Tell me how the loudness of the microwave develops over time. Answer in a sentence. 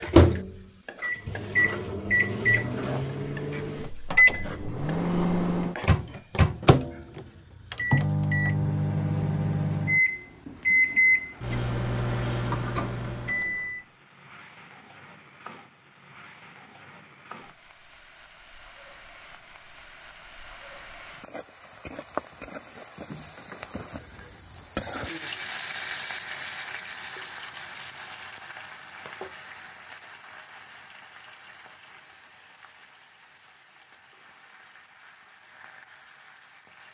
The loudness of the microwave stays about the same.